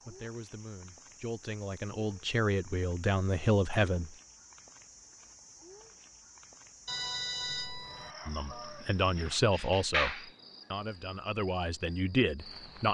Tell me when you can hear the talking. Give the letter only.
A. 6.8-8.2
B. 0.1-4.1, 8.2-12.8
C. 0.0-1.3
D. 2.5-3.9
B.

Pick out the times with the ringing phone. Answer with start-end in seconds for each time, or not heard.
6.8-8.2.